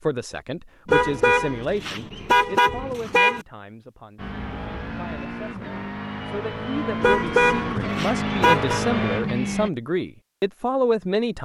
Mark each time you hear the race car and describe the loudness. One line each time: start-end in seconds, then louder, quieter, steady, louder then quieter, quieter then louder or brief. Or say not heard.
4.2-9.7 louder.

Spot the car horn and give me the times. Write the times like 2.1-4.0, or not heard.
0.8-3.5, 7.0-8.8.